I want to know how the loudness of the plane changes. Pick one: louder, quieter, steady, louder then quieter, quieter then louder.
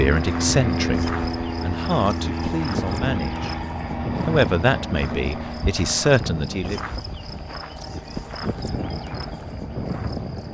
quieter.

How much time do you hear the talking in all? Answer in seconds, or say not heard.
6 s.